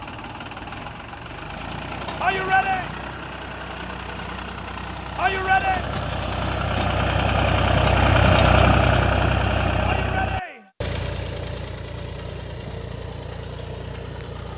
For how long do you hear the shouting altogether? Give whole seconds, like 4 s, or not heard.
2 s.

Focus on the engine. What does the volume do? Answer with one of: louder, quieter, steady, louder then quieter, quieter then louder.
louder then quieter.